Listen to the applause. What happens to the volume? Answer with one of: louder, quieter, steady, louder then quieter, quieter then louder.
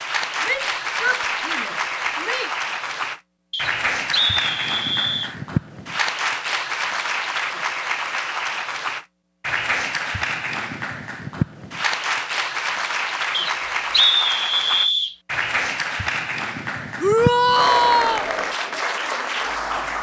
steady.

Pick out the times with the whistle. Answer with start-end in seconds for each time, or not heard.
3.5-5.3, 13.3-15.2.